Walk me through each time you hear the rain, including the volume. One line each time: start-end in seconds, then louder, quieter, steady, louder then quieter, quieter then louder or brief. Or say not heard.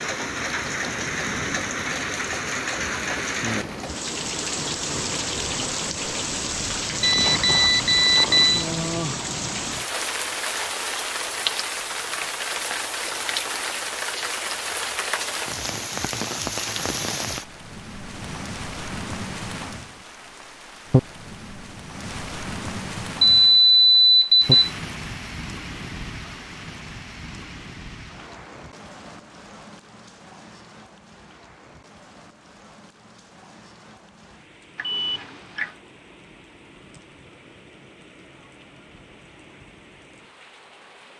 0.0-41.1 quieter.